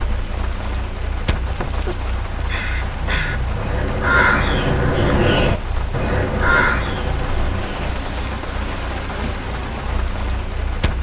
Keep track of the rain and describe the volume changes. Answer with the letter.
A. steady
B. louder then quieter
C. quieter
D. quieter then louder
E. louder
A.